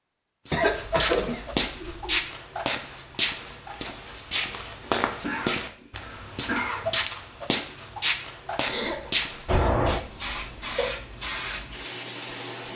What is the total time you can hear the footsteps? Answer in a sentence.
You can hear the footsteps for 9 seconds altogether.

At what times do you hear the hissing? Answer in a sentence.
You can hear the hissing from 9.4 to 12.7 s.